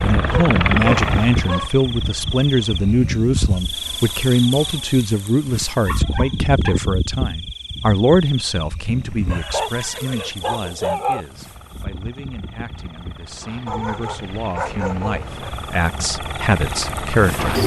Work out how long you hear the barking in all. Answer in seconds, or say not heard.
6 s.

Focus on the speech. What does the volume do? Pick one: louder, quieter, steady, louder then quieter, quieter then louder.
quieter then louder.